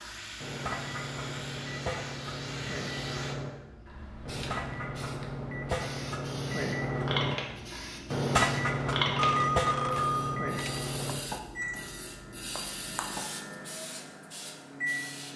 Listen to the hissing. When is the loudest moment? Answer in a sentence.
The loudest moment of the hissing is at 9 seconds.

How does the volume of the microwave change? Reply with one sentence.
The volume of the microwave goes up, then down.